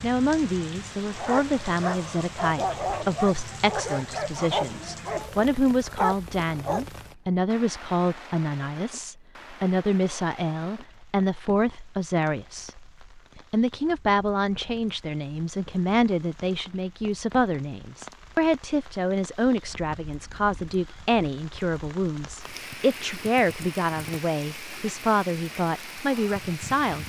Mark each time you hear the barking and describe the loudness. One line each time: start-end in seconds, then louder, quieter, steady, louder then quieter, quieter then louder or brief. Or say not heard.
1.1-6.8 steady.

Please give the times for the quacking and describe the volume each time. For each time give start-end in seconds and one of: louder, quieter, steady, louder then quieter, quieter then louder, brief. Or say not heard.
not heard.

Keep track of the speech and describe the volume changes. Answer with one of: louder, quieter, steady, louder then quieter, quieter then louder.
steady.